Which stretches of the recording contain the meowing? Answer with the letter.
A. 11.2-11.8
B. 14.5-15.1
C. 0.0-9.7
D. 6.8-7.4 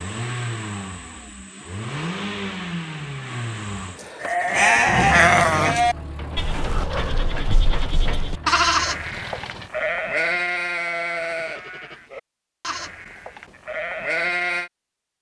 D.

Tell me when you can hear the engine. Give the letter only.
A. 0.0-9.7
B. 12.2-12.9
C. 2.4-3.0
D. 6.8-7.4
A.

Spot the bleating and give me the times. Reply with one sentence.
You can hear the bleating from 4.0 to 14.7 s.